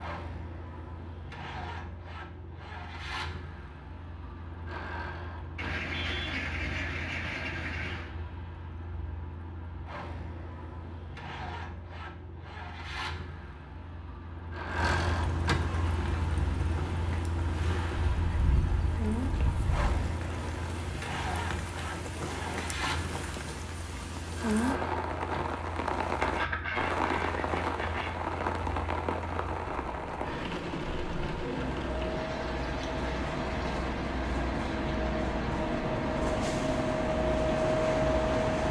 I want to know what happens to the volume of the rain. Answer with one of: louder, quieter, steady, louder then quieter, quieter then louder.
louder then quieter.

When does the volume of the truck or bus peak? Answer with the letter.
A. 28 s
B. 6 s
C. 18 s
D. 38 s
D.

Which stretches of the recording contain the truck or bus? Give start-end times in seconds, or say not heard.
0.0-38.6.